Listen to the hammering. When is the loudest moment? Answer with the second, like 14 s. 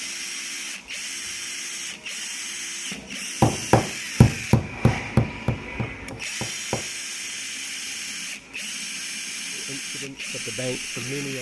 4 s.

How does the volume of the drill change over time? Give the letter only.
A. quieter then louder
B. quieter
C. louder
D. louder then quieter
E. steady
E.